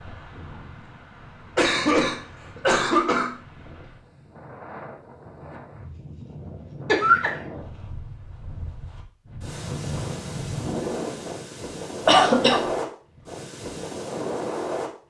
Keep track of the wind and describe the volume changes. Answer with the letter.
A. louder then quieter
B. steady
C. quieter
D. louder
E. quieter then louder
D.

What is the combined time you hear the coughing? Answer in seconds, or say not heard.
3 s.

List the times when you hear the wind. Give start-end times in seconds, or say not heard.
0.0-14.9.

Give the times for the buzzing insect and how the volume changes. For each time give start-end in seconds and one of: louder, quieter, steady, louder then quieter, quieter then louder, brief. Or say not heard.
not heard.